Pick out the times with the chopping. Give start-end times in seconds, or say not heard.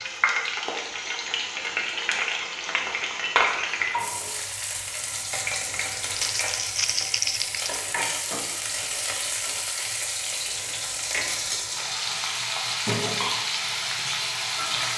not heard.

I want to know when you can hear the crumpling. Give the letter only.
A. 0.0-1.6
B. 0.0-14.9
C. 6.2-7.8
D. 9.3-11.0
C.